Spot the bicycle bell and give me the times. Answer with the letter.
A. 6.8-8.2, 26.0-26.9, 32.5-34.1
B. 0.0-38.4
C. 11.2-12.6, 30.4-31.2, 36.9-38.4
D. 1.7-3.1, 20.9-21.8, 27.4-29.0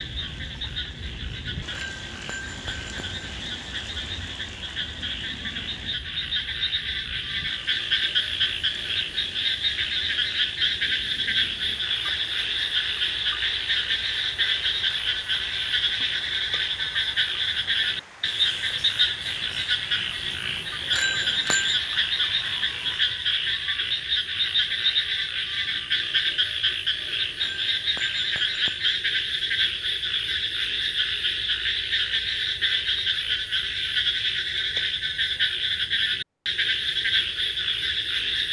D.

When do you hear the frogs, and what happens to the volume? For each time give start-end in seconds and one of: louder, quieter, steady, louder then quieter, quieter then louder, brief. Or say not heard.
0.0-38.4 louder.